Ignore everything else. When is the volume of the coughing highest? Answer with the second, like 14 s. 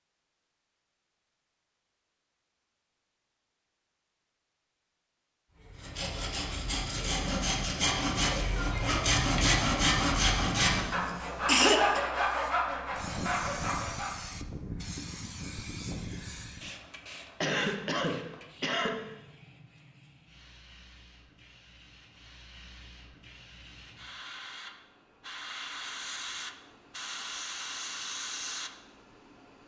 12 s.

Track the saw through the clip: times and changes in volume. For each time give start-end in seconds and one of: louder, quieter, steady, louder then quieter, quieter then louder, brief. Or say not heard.
5.6-14.2 louder then quieter.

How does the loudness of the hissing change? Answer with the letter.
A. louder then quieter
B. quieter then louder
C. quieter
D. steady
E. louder
B.